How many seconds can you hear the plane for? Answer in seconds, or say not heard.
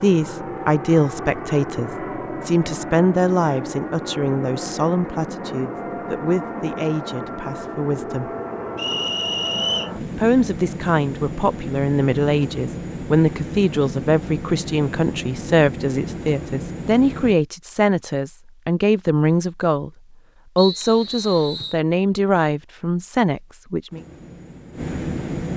19 s.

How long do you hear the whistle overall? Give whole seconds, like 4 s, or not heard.
2 s.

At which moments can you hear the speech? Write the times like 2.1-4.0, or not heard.
0.0-8.3, 10.2-19.9, 20.6-24.0.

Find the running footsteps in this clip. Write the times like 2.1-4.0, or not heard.
not heard.